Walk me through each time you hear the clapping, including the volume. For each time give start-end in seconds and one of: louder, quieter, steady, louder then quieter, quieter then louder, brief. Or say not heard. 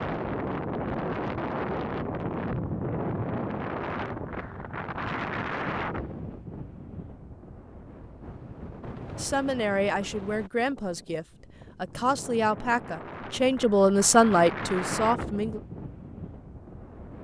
not heard.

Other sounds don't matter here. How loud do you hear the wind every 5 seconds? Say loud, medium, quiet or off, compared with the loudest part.
loud, medium, medium, medium.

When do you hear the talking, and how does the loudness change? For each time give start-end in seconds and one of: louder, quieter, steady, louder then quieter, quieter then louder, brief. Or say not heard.
9.2-15.6 quieter then louder.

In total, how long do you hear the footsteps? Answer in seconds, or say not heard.
not heard.